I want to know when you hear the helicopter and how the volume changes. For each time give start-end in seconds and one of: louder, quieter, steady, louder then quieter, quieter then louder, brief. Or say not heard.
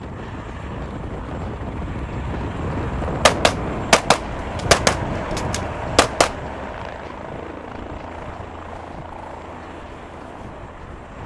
0.0-11.2 louder then quieter.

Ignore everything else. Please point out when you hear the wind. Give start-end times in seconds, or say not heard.
0.0-11.2.